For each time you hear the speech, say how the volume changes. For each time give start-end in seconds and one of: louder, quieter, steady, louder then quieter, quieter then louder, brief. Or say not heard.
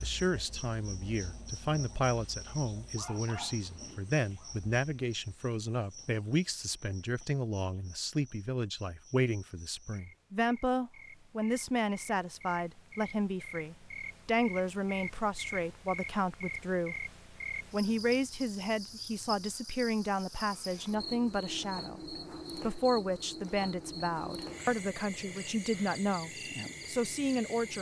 0.0-17.1 steady
17.7-27.7 steady.